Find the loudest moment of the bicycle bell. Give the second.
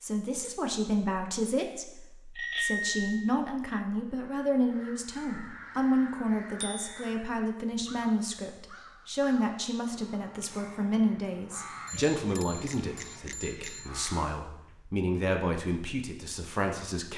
3 s.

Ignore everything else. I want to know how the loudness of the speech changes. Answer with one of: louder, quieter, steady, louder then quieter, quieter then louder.
steady.